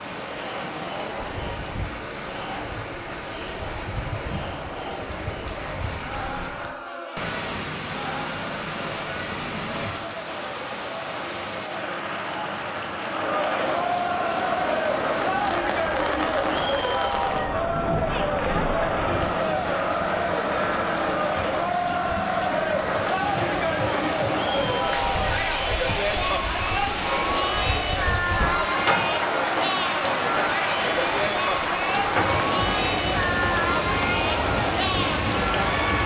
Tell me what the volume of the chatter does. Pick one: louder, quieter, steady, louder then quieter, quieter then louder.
louder.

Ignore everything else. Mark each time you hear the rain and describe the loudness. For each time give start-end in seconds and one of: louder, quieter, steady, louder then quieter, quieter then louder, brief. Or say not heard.
0.0-36.0 louder.